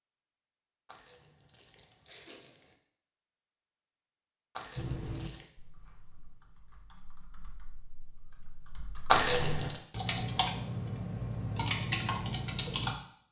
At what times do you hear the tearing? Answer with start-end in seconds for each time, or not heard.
0.8-2.8, 4.5-5.5, 9.1-9.8.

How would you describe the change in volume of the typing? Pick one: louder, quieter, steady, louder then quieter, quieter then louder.
quieter then louder.